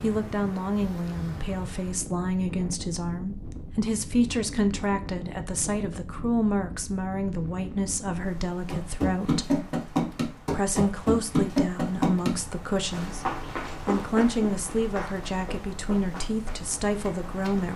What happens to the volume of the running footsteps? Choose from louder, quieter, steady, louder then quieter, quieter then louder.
quieter.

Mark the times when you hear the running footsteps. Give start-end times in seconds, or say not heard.
8.7-17.7.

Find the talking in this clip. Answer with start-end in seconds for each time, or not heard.
0.0-9.5, 10.5-17.7.